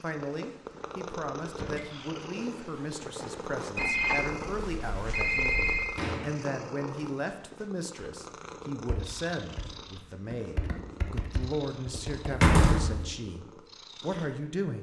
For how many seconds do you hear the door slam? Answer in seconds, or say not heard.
2 s.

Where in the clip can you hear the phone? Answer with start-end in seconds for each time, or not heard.
3.8-6.0.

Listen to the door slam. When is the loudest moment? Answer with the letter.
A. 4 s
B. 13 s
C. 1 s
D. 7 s
B.